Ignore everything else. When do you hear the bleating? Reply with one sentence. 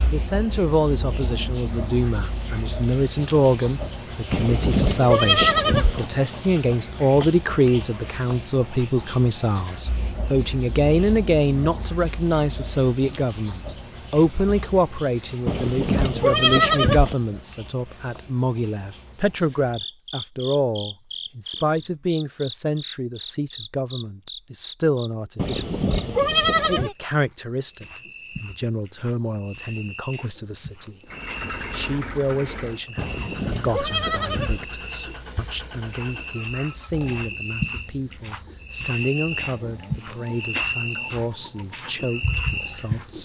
You can hear the bleating from 4.3 to 6.0 s, from 15.4 to 17.1 s, from 25.4 to 26.9 s and from 33.0 to 34.6 s.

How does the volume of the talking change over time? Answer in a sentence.
The loudness of the talking goes down.